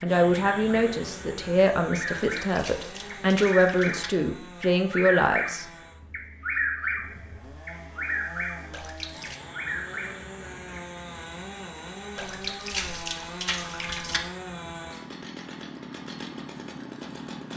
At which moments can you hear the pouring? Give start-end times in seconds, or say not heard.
2.1-4.1, 8.7-9.4, 12.2-14.2.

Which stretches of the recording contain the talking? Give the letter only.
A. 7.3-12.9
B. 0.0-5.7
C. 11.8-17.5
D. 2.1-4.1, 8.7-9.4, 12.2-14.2
B.